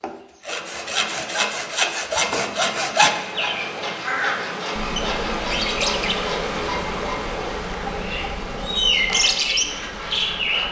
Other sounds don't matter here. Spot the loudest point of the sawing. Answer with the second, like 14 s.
3 s.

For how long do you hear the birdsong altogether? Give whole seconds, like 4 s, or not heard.
7 s.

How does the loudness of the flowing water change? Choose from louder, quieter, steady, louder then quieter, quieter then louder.
louder then quieter.